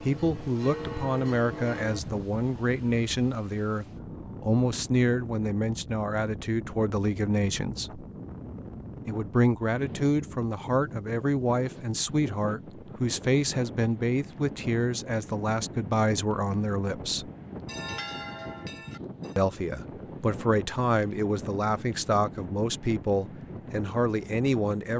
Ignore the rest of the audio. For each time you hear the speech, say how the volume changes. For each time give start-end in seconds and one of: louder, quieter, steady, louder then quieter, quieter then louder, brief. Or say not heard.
0.0-8.1 steady
9.1-17.3 steady
19.4-24.9 steady.